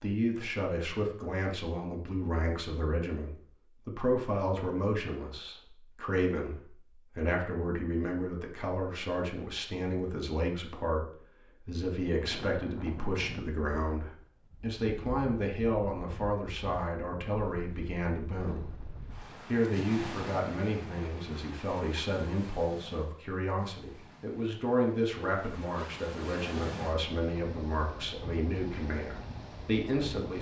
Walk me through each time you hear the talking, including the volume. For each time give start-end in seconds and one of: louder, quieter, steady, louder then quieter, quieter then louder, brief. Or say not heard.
0.0-30.3 steady.